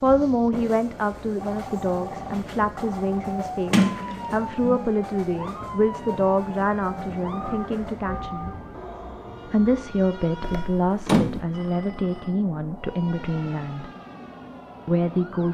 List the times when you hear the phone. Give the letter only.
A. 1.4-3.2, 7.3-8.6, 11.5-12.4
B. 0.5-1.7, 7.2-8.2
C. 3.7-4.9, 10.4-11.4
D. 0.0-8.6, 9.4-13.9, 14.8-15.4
A.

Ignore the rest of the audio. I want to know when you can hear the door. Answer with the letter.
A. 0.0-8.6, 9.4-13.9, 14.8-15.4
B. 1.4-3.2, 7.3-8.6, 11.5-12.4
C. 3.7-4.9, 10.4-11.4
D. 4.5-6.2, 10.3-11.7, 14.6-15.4
C.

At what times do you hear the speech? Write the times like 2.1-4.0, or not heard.
0.0-8.6, 9.4-13.9, 14.8-15.4.